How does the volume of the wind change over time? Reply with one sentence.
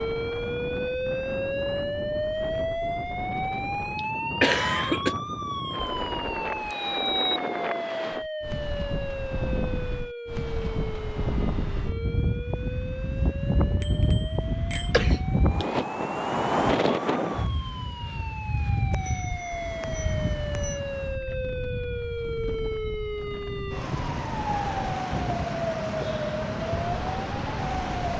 The volume of the wind goes up, then down.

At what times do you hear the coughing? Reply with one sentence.
The coughing can be heard from 4.0 to 5.2 s and from 14.9 to 15.8 s.